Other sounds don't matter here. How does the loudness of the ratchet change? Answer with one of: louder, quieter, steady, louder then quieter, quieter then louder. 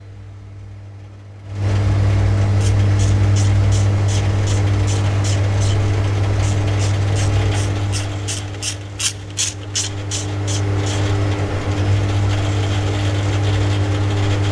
louder.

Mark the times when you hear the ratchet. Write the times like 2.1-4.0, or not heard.
2.5-10.9.